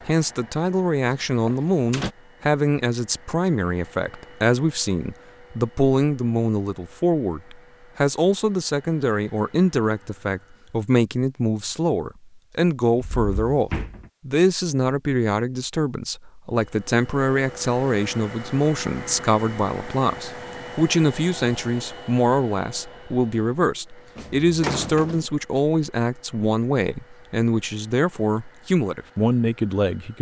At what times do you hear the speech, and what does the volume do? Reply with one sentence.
You can hear the speech from 0.1 to 30.1 s, at a steady volume.